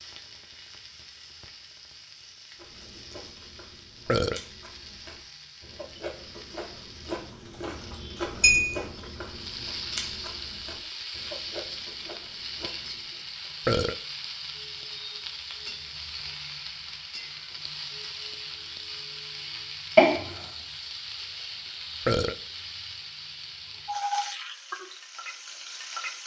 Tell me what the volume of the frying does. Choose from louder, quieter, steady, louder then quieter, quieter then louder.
louder.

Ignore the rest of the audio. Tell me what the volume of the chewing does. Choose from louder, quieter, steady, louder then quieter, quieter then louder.
louder then quieter.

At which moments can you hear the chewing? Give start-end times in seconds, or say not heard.
2.5-13.2.